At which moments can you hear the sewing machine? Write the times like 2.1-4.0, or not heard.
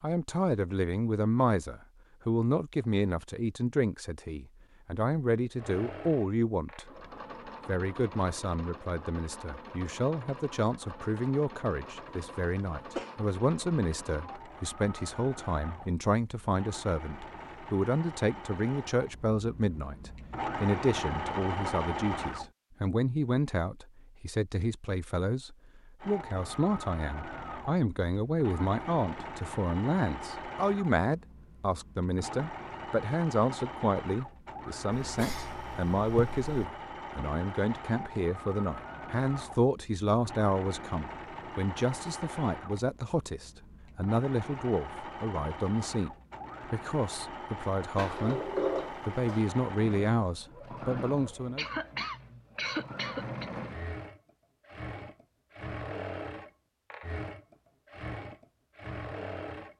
5.5-22.5, 26.0-59.7.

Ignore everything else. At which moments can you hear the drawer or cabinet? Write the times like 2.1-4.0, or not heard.
48.0-49.5.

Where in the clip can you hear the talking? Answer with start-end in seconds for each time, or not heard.
0.0-6.9, 7.7-46.1, 46.7-51.6.